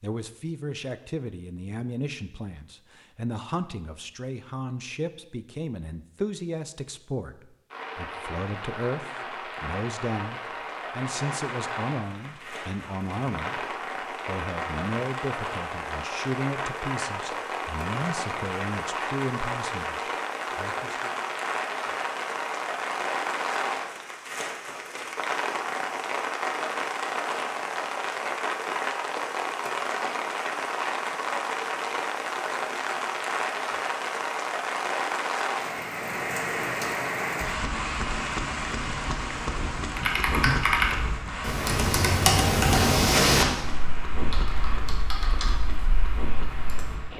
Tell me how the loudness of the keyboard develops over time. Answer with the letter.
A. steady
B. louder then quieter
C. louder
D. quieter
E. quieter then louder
D.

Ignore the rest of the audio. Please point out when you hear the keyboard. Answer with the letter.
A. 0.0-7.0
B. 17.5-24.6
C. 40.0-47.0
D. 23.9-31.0
C.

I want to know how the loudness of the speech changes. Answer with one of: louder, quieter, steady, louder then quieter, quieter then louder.
steady.